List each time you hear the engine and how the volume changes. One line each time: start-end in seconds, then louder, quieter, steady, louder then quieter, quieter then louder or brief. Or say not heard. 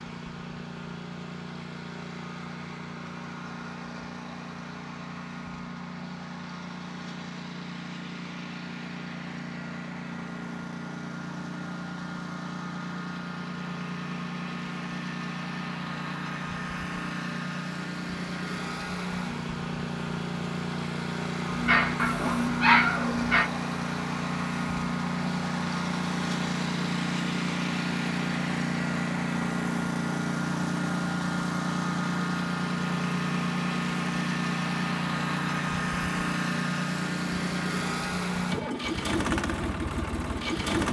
0.0-40.8 louder.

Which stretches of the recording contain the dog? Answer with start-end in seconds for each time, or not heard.
21.4-23.5.